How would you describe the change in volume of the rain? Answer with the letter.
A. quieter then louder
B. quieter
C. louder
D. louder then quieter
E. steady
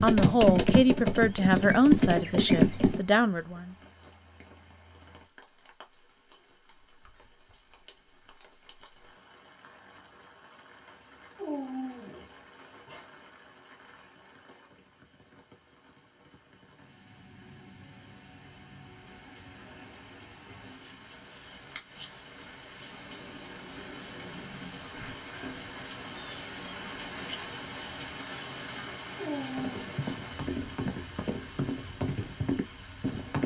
C.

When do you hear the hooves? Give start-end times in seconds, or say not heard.
0.0-3.0, 29.6-33.4.